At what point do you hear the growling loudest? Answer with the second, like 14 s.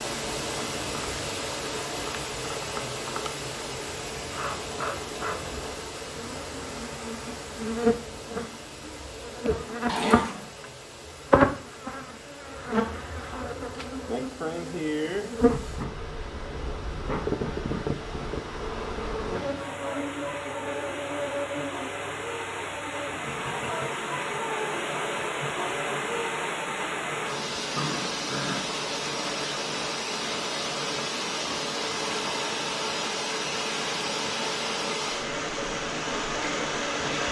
10 s.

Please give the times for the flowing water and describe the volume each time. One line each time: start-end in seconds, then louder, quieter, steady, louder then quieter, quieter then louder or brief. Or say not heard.
0.0-37.2 quieter then louder.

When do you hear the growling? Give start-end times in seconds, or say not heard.
9.8-10.5, 27.7-28.6.